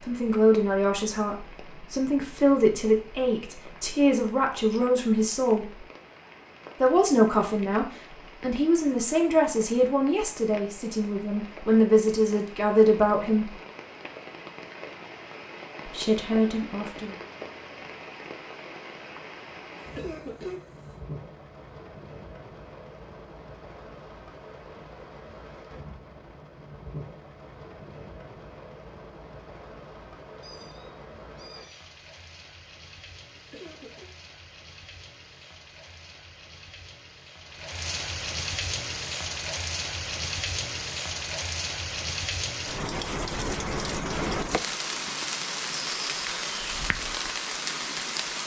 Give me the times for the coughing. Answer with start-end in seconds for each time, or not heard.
19.8-20.6, 33.4-34.1.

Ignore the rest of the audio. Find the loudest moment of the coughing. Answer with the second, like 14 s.
20 s.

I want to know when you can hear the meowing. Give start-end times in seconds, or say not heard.
30.4-31.9.